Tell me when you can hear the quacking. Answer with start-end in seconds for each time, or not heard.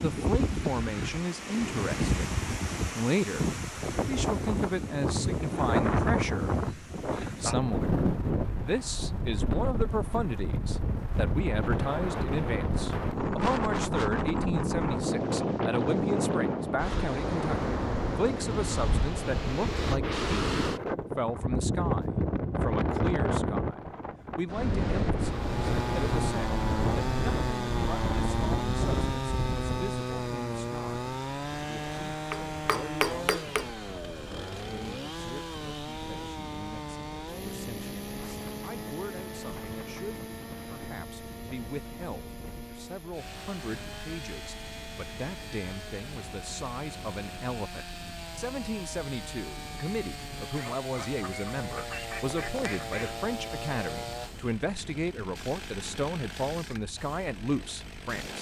50.5-53.2.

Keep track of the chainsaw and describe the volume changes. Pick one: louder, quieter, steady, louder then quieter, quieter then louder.
quieter.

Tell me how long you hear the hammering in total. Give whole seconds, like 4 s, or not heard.
2 s.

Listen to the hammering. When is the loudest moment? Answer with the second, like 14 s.
33 s.